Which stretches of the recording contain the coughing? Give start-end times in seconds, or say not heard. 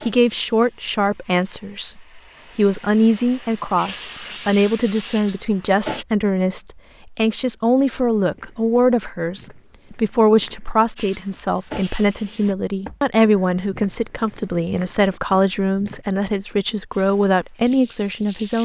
not heard.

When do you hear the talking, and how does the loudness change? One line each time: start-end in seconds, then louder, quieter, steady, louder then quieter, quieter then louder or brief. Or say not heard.
0.0-18.6 steady.